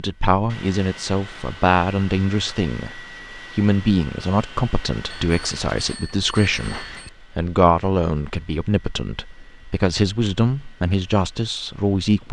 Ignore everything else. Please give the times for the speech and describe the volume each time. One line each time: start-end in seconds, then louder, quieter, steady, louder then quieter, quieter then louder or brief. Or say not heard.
0.0-12.2 steady.